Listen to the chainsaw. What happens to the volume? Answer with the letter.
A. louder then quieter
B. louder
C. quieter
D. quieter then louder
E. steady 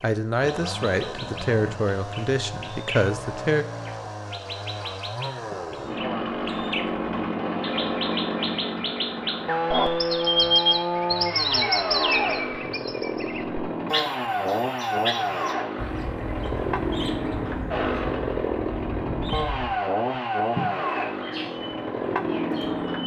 B.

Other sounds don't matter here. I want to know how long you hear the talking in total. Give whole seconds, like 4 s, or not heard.
4 s.